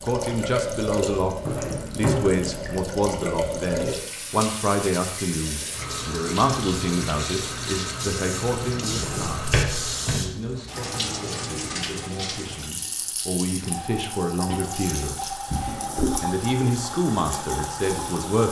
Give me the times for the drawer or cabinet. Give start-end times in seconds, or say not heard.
1.4-2.5, 8.6-10.2, 15.4-16.2.